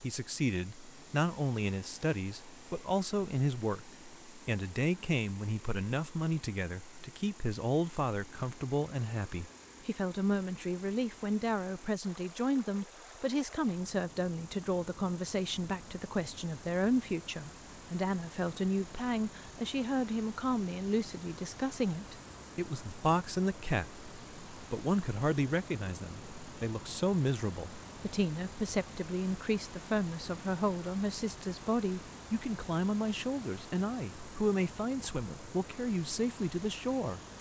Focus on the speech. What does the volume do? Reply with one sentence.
The volume of the speech stays about the same.